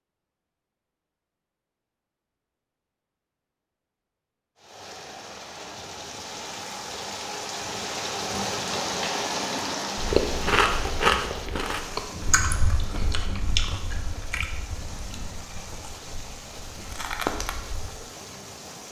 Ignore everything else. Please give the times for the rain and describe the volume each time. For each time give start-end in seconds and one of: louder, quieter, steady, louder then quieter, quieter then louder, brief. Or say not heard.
4.5-18.8 louder then quieter.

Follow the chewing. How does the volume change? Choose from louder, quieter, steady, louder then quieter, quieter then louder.
quieter then louder.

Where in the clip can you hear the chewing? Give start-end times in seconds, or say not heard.
9.9-17.9.